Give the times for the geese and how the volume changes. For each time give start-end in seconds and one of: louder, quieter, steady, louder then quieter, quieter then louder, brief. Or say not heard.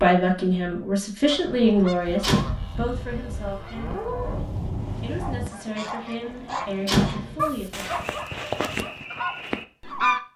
1.2-10.2 louder.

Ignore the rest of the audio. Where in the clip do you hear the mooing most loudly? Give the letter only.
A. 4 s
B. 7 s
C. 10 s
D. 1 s
A.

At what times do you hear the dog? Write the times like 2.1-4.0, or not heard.
5.2-10.1.